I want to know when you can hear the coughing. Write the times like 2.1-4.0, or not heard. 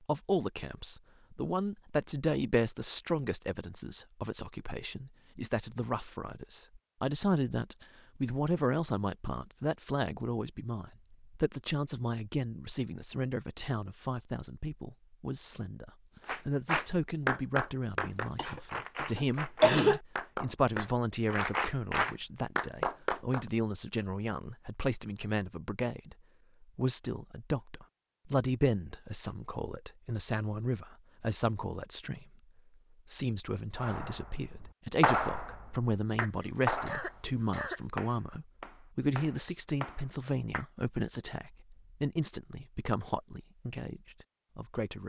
18.0-20.0, 36.1-37.8.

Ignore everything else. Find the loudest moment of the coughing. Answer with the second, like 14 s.
20 s.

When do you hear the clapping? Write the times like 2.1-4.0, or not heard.
16.2-23.4, 33.8-40.6.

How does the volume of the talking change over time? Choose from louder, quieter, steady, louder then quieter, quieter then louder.
steady.